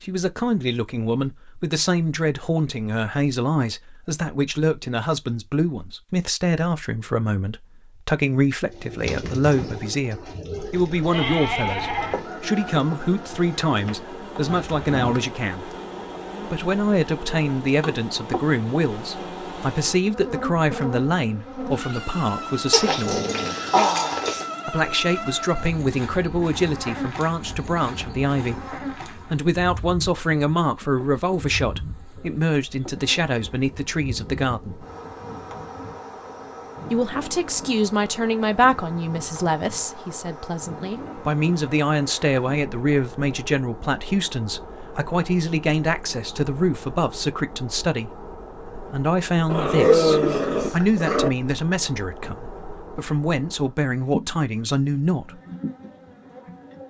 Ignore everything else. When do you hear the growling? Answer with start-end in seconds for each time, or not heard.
14.4-15.2, 22.7-24.4, 49.5-51.3.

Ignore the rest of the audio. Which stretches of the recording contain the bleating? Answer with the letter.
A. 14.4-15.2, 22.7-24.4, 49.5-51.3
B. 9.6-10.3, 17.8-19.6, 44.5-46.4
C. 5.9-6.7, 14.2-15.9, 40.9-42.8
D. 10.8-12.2
D.